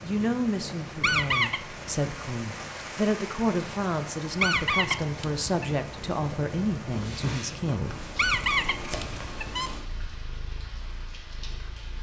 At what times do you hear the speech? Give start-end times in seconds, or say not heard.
0.0-8.0.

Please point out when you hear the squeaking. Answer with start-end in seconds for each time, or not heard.
1.0-1.6, 4.3-5.5, 8.2-9.7.